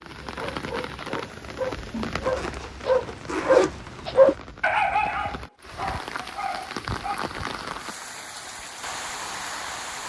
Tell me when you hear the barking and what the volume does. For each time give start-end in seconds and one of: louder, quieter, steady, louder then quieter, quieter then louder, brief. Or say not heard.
0.2-7.2 louder then quieter.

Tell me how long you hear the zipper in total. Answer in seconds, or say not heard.
2 s.